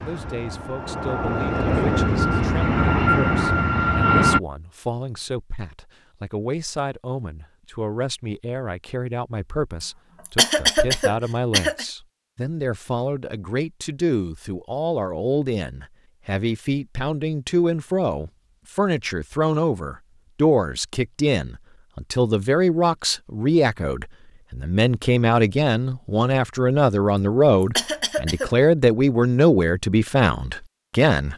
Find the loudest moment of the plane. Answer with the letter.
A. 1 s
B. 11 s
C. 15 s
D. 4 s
D.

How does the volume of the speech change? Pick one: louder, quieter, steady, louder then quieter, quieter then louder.
louder.